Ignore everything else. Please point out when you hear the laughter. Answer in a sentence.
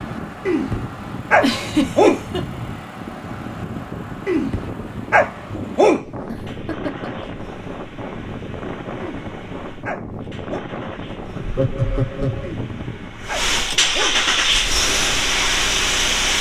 The laughter can be heard from 1.4 to 2.4 s, from 6.2 to 7.3 s and from 11.3 to 12.6 s.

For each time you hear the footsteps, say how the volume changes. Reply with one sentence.
You can't hear the footsteps here.